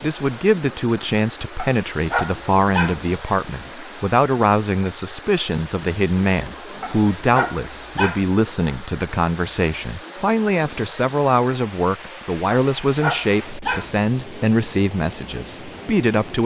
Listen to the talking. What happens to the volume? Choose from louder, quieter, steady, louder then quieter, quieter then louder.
steady.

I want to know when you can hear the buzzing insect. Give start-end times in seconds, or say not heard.
not heard.